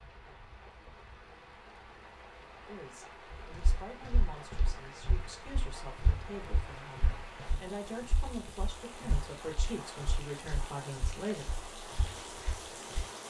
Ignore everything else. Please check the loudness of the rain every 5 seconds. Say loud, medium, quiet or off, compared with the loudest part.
medium, loud, loud.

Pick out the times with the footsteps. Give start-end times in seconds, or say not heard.
3.3-13.0.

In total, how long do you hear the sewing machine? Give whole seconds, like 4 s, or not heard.
not heard.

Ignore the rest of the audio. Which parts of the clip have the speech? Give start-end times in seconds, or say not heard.
2.6-11.4.